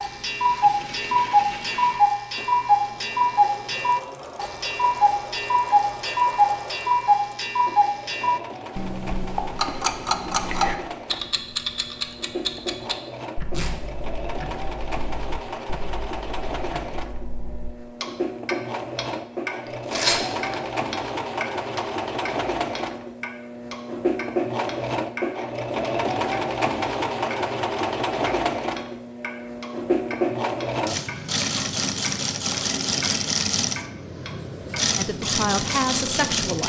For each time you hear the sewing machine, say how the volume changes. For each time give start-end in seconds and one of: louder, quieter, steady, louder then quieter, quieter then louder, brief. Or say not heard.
0.0-36.6 louder.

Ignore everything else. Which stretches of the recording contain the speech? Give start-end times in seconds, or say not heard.
35.0-36.6.